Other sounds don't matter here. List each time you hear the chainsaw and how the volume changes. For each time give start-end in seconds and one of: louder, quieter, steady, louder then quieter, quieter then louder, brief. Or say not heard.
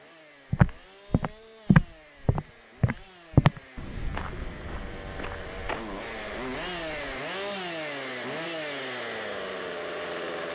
0.0-10.5 louder.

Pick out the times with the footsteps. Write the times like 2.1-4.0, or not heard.
0.5-7.2.